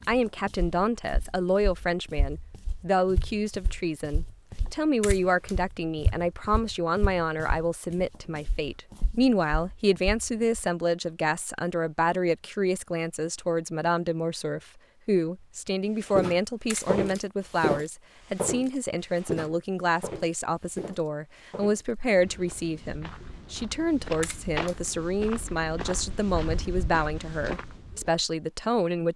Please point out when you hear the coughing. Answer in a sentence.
The coughing can't be heard in this clip.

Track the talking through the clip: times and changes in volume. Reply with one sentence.
You can hear the talking from 0.1 to 29.1 s, at a steady volume.